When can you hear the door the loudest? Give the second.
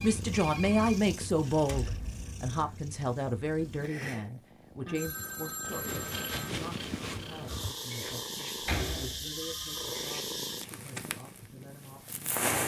9 s.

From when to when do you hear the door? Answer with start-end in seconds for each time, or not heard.
1.6-2.5, 7.9-10.1.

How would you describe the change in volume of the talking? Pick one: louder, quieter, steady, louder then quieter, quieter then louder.
quieter.